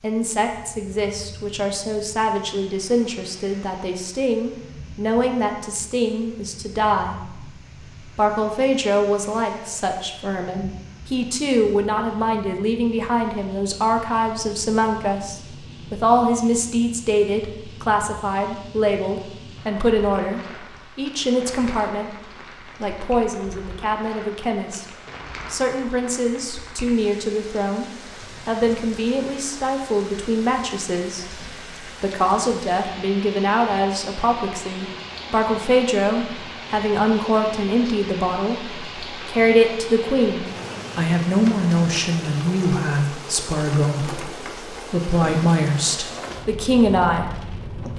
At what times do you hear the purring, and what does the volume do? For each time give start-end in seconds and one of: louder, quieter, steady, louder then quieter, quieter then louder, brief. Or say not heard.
not heard.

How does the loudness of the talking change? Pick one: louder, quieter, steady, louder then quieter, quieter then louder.
steady.